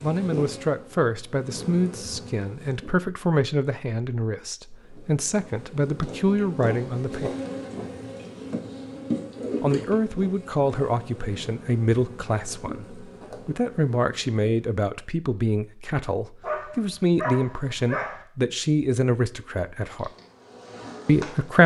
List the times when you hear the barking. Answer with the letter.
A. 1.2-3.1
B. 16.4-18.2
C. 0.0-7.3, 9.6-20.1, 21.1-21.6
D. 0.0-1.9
B.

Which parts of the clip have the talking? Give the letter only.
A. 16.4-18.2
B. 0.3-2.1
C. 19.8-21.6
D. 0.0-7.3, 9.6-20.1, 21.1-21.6
D.